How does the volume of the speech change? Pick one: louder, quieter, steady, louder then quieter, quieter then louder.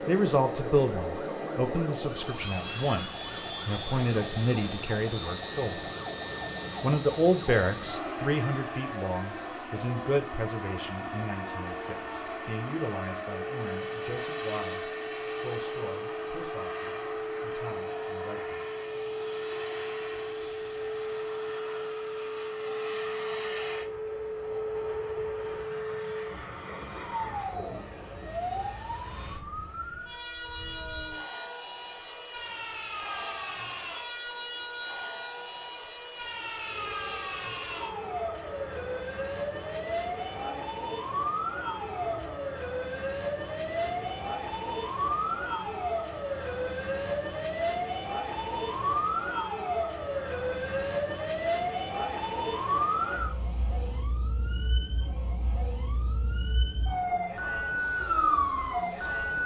quieter.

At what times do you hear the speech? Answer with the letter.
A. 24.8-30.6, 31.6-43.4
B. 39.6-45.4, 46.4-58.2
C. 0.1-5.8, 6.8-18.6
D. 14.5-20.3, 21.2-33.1
C.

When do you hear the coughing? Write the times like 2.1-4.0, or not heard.
not heard.